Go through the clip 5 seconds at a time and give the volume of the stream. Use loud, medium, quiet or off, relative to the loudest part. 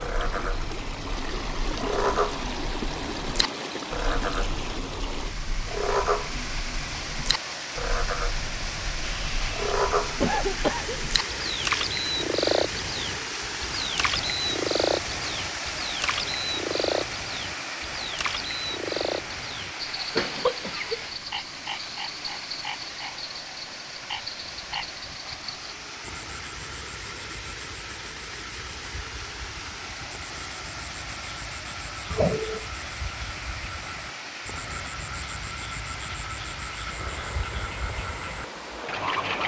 loud, loud, loud, loud, medium, medium, medium, medium.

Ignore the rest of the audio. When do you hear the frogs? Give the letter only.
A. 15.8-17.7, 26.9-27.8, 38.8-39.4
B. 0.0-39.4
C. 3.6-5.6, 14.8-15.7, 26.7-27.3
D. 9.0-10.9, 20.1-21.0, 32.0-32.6
B.